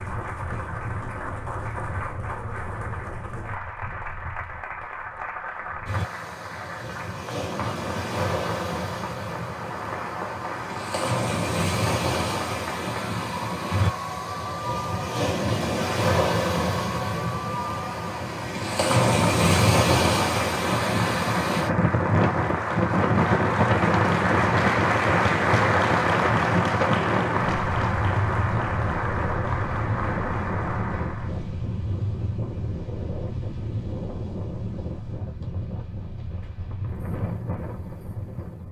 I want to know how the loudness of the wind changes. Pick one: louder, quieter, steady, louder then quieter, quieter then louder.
louder then quieter.